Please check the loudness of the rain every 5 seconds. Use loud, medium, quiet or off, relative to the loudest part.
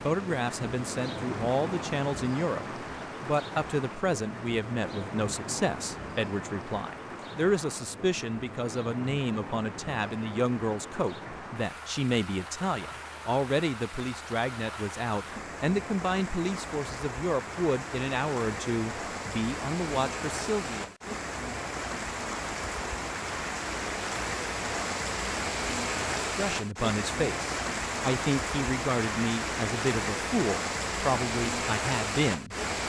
medium, medium, medium, medium, loud, loud, loud.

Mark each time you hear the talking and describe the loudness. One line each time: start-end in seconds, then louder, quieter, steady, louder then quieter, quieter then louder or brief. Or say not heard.
0.0-20.9 steady
26.2-32.5 steady.